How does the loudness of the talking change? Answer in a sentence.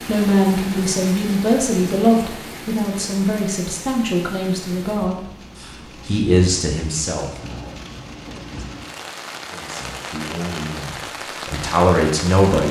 The volume of the talking goes down, then up.